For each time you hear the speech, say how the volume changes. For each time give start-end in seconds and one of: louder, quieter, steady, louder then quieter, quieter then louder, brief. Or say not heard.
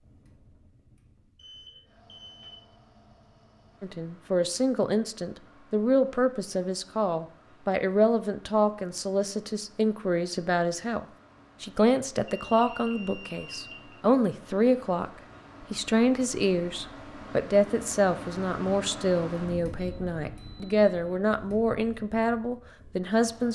3.8-23.5 steady.